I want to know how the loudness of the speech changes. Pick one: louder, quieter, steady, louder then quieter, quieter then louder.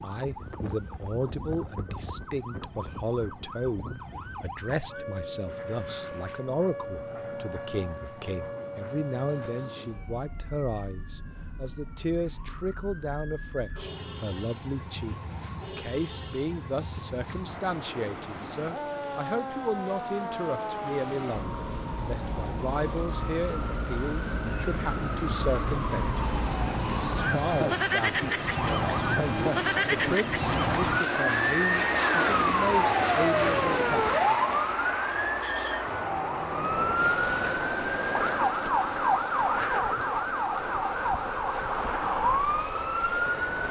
steady.